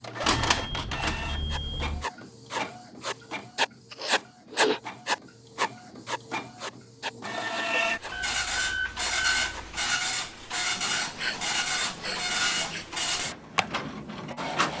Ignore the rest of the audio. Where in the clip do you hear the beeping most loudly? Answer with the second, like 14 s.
9 s.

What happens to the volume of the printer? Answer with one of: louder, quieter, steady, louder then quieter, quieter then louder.
quieter then louder.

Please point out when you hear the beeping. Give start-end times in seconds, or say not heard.
0.2-2.0, 8.1-9.9.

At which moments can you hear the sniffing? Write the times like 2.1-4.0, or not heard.
3.9-4.8, 10.8-12.8.